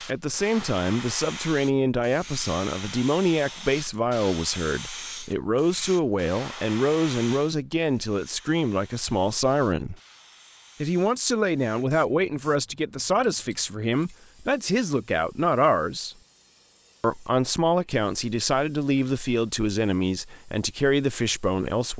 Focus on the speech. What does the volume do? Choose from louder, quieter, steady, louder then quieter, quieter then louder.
steady.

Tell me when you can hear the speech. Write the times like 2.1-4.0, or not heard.
0.1-9.9, 10.8-16.1, 17.0-21.9.